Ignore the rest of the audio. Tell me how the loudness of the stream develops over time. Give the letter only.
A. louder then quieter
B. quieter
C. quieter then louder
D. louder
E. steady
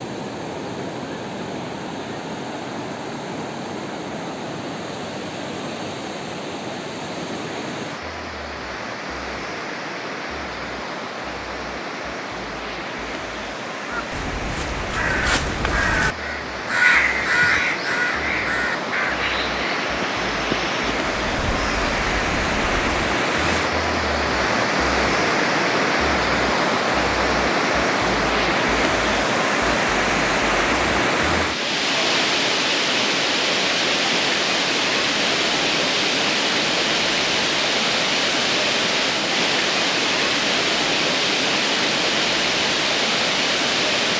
D.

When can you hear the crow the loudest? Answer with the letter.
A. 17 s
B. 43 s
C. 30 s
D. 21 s
A.